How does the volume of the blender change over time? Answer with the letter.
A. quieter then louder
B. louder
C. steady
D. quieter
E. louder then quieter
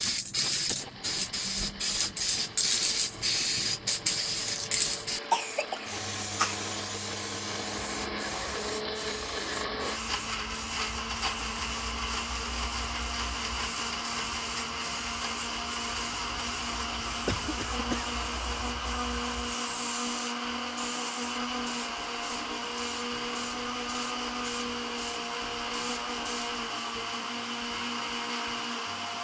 B.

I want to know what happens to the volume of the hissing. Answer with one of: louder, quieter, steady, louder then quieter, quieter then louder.
quieter.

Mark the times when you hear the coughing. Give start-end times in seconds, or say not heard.
5.3-6.6, 17.1-18.1.